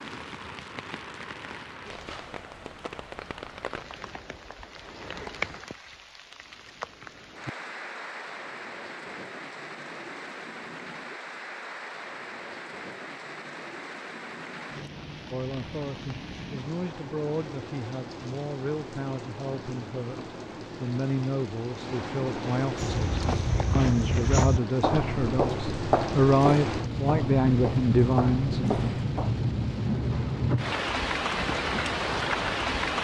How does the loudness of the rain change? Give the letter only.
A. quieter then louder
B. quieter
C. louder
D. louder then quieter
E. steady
C.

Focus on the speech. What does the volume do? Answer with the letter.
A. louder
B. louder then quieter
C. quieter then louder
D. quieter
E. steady
A.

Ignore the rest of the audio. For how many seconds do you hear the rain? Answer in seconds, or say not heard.
33 s.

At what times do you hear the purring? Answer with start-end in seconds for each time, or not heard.
not heard.